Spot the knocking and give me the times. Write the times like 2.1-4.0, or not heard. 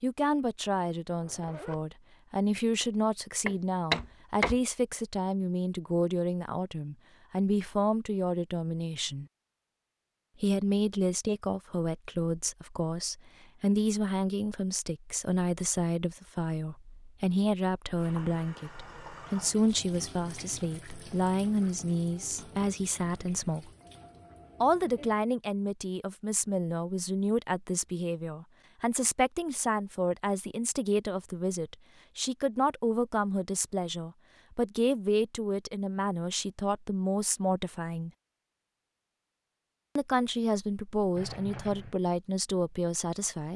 3.5-4.5.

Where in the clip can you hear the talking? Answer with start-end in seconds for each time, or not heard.
0.0-9.2, 10.4-23.7, 24.6-38.1, 40.0-43.5.